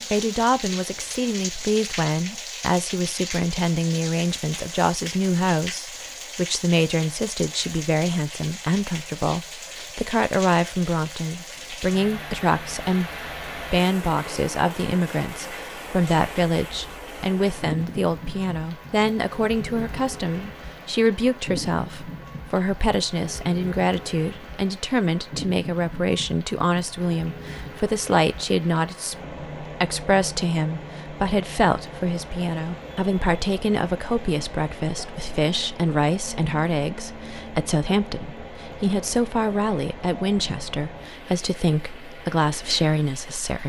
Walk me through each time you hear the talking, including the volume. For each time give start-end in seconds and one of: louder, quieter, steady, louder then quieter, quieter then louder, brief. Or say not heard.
0.1-43.6 steady.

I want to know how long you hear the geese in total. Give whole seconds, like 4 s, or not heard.
not heard.